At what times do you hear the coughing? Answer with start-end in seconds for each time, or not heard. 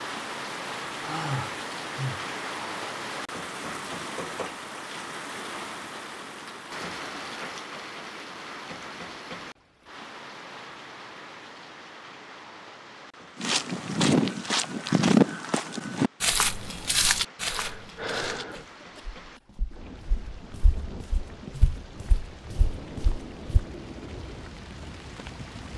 18.5-19.4.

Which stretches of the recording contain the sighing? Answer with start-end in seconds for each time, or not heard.
1.0-2.2, 17.4-18.6.